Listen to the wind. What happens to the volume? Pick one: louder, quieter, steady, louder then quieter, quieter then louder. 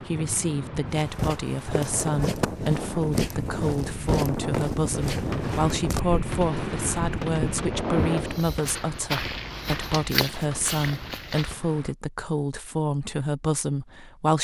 louder.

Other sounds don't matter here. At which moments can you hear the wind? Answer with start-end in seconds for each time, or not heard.
0.0-8.4.